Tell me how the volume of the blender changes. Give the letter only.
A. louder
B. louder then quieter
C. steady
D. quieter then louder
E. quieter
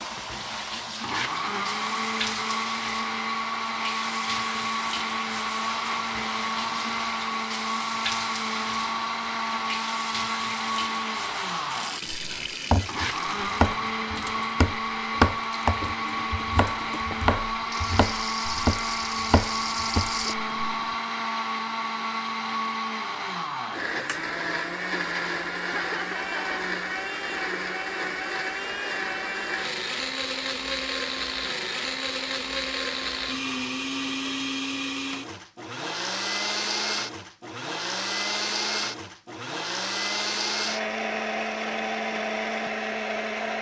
C.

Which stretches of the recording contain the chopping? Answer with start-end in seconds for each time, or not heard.
12.1-20.8.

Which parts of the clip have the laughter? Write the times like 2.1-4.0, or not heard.
25.6-26.6.